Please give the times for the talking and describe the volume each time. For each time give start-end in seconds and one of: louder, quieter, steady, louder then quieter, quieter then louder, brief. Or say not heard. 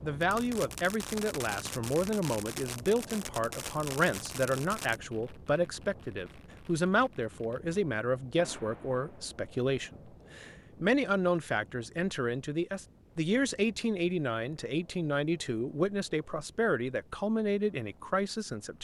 0.0-18.8 steady.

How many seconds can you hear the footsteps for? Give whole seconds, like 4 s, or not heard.
not heard.